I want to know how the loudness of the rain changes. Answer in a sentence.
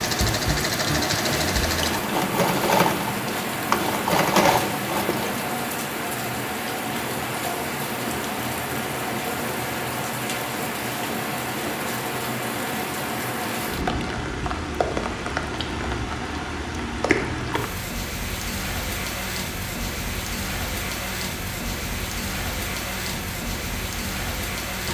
The volume of the rain stays about the same.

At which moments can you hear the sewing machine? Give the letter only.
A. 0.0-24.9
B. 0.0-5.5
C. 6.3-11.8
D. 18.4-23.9
B.